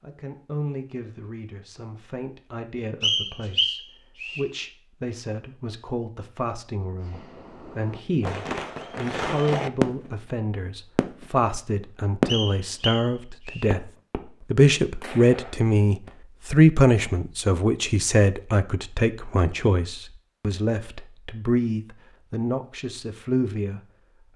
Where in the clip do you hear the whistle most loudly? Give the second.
3 s.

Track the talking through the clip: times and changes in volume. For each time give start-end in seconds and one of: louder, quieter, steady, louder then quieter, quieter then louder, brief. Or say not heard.
0.0-13.8 louder
14.5-23.8 quieter.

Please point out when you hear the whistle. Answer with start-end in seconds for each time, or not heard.
3.0-4.4, 12.2-13.7.